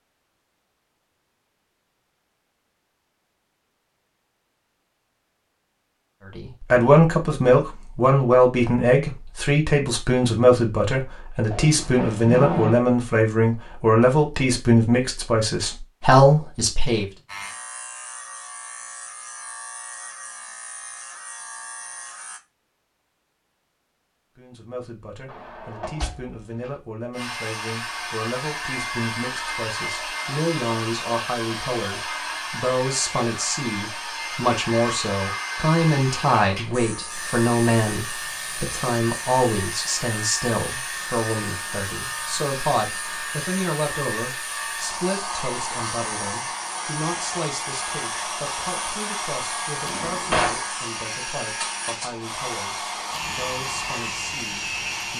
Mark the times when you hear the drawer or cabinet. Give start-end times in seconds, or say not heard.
11.5-12.8, 25.2-26.7, 49.9-50.6.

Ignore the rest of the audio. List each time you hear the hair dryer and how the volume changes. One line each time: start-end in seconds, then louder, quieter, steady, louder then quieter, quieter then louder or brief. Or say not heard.
27.1-55.1 steady.